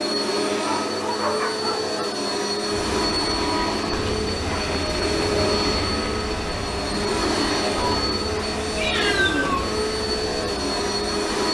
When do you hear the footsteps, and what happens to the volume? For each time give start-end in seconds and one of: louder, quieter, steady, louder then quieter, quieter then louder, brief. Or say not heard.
not heard.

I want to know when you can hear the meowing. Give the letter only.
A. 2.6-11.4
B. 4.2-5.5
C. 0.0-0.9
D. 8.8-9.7
D.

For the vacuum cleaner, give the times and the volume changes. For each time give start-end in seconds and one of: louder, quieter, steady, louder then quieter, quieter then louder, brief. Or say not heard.
0.0-11.4 steady.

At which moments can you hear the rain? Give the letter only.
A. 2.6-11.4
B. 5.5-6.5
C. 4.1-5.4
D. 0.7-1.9
A.